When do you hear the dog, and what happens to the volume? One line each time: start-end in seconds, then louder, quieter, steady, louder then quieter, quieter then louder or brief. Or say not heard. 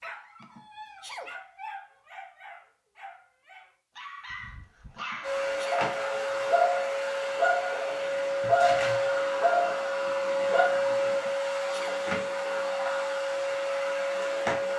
0.0-10.7 louder.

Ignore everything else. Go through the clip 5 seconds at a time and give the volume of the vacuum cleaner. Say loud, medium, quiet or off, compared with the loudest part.
off, loud, loud.